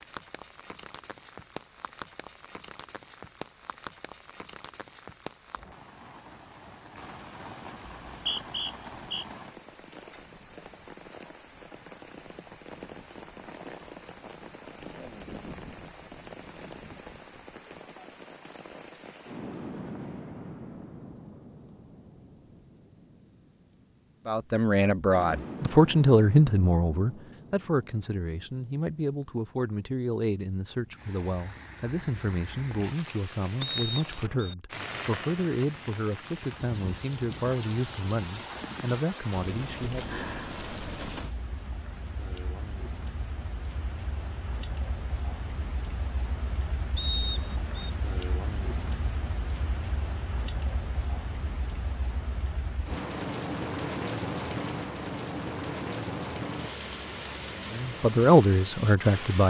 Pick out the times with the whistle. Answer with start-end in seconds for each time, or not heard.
8.0-9.2, 33.6-34.5, 47.0-47.9.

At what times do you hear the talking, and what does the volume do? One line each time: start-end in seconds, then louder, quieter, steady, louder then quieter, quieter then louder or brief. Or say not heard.
24.2-40.2 quieter
57.7-59.4 brief.